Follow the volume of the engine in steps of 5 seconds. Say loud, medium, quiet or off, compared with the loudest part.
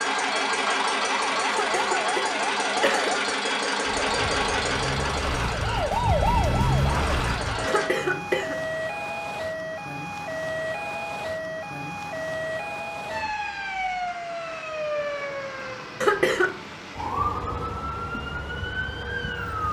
loud, medium, off, off.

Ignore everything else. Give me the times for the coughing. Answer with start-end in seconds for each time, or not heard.
1.5-3.1, 7.7-8.7, 16.0-16.6.